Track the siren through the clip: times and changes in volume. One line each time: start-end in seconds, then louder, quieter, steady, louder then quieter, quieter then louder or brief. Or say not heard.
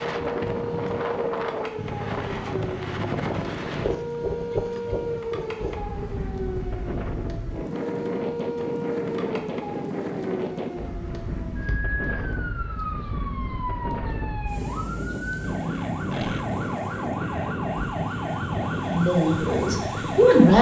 0.0-20.5 steady.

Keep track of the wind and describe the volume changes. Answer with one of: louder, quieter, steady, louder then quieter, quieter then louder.
steady.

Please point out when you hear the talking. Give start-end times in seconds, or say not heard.
18.9-20.5.